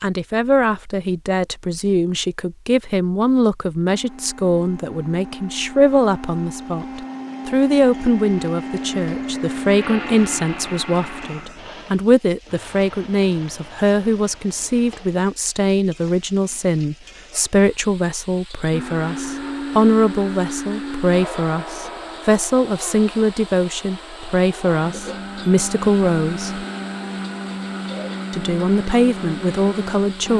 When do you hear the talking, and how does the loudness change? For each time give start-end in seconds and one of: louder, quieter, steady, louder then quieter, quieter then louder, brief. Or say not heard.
0.0-26.6 steady
28.3-30.3 brief.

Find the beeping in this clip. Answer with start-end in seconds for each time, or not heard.
not heard.